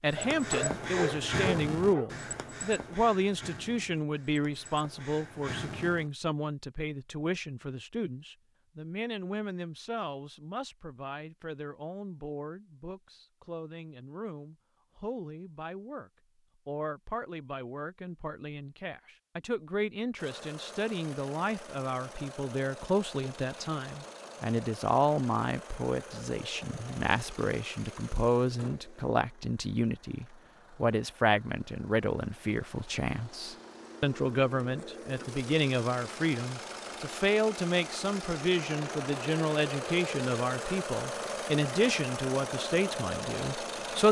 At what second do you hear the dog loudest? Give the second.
1 s.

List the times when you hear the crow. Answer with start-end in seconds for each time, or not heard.
0.1-6.1.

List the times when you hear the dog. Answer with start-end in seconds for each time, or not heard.
0.1-2.1.